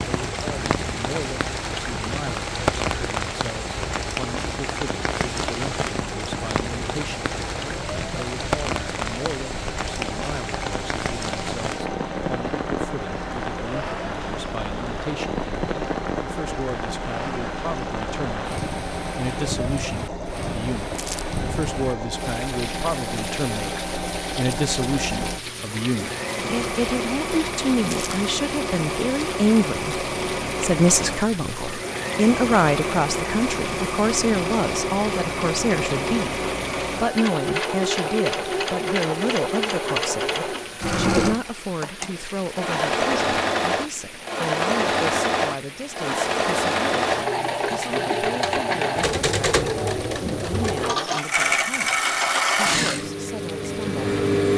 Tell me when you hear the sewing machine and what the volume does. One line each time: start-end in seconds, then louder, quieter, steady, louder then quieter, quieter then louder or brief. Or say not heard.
0.0-54.5 louder.